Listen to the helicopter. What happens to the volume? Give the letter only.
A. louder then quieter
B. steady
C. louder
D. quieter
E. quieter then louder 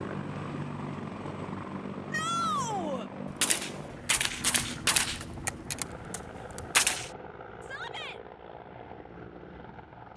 D.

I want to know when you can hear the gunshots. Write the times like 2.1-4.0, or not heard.
3.2-7.1.